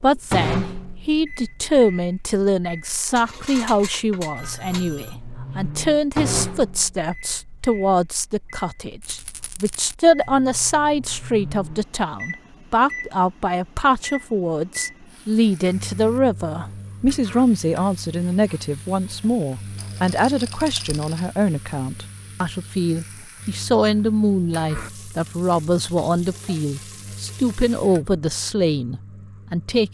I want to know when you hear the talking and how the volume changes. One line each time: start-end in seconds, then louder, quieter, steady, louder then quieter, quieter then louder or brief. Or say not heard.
0.0-29.9 steady.